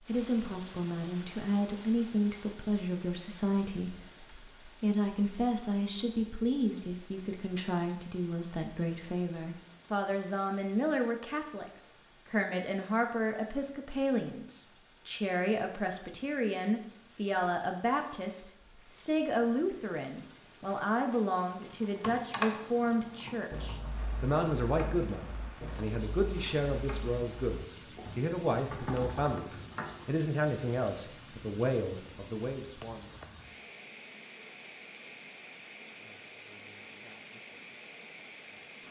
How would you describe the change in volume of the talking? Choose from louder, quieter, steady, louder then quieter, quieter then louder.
steady.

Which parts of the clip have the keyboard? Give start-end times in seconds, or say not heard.
21.6-30.1.